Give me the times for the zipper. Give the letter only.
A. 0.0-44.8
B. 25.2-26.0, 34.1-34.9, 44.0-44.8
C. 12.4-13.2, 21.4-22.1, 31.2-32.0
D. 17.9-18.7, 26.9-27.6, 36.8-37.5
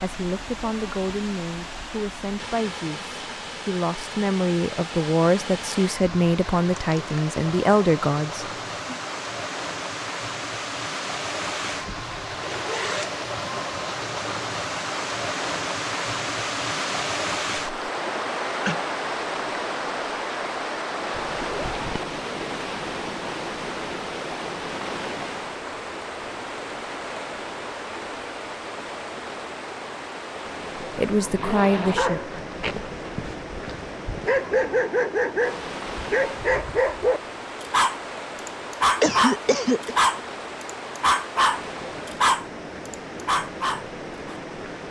C.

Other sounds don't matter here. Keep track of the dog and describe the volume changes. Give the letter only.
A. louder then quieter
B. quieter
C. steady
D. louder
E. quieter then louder
D.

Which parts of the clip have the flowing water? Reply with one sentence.
The flowing water can be heard from 0.0 to 44.8 s.